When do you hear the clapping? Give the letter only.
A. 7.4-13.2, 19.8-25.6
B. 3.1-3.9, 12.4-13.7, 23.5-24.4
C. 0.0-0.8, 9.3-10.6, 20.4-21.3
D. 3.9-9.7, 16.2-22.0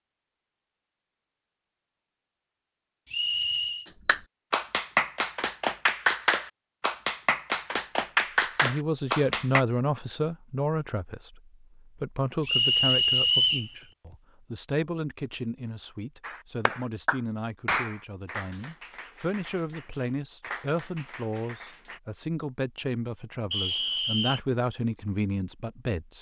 D.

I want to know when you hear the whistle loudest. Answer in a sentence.
The volume of the whistle peaks at 13 seconds.